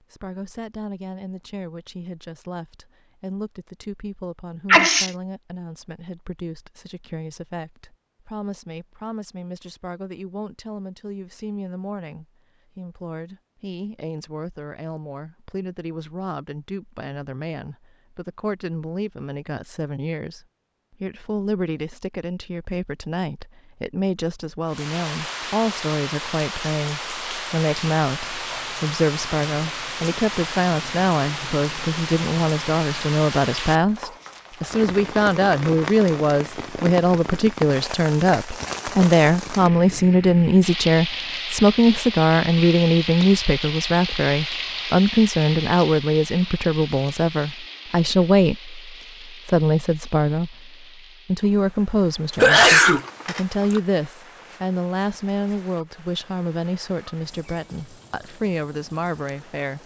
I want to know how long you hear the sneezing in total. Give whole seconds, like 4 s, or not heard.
2 s.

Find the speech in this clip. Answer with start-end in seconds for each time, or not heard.
0.1-59.8.